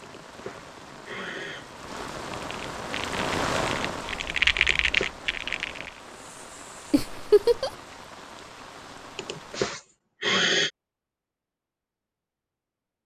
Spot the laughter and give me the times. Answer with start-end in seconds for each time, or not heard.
6.9-7.7.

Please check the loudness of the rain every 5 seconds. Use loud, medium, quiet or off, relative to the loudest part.
loud, medium, off.